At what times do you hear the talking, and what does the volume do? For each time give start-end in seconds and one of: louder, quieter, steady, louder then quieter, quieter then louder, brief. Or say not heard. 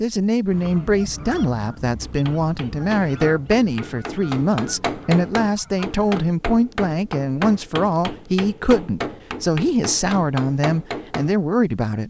0.0-12.0 steady.